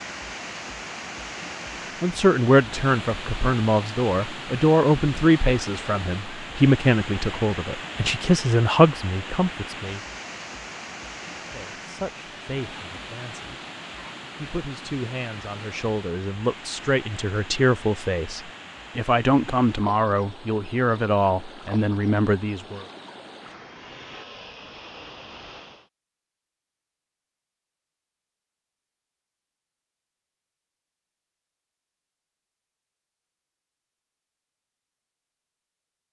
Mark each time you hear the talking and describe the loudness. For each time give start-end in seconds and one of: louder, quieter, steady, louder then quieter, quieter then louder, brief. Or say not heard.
2.0-10.0 steady
11.5-13.6 brief
14.3-22.9 louder.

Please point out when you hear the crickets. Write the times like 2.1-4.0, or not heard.
not heard.